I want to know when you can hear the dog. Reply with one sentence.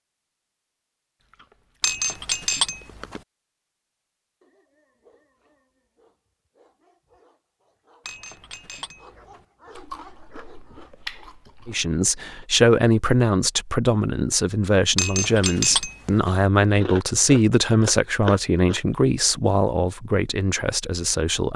You can hear the dog from 4.4 to 11.4 s.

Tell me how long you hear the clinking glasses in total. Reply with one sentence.
You can hear the clinking glasses for 4 seconds altogether.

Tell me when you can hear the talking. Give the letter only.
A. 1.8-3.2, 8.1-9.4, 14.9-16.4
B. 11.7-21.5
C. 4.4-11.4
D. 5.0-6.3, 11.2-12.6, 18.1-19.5
B.